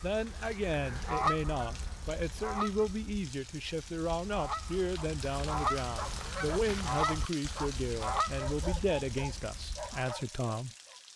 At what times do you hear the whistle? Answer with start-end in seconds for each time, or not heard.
not heard.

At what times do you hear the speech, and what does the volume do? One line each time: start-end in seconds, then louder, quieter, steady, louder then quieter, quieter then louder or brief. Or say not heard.
0.0-11.1 steady.